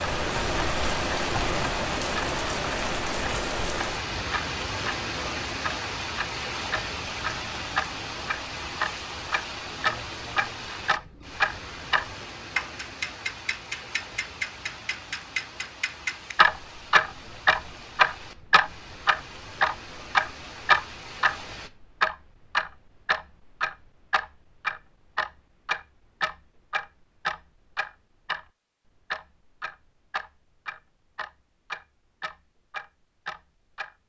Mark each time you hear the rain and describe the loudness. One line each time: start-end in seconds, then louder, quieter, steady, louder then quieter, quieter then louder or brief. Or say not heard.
0.0-21.7 quieter.